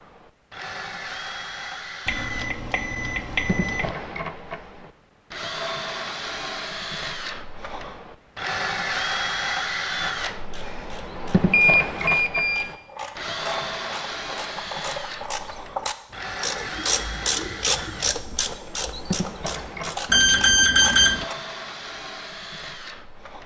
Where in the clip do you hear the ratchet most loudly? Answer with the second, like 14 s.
18 s.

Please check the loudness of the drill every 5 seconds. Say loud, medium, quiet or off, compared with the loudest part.
medium, loud, loud, medium, medium.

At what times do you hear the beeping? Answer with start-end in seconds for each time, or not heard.
2.0-3.9, 11.5-12.7, 20.1-21.2.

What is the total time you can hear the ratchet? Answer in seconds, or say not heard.
11 s.